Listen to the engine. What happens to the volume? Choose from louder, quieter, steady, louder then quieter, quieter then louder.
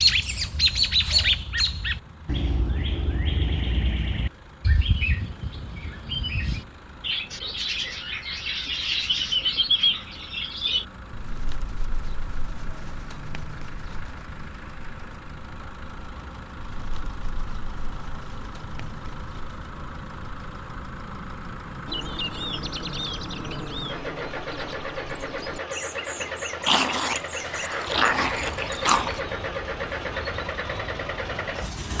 louder.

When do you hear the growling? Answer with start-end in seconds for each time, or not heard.
26.6-29.2.